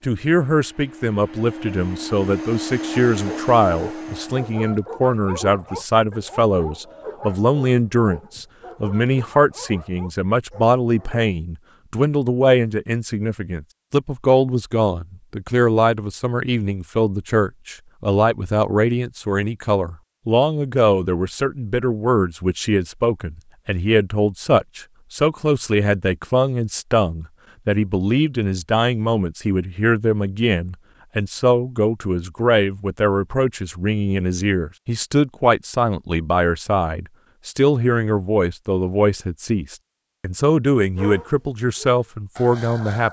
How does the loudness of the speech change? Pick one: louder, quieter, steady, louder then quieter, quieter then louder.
steady.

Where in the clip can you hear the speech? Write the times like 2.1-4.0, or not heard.
0.0-43.0.